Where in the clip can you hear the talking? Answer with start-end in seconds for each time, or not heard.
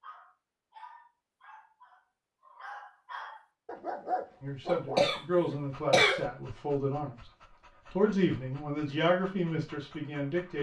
4.4-7.2, 7.9-10.5.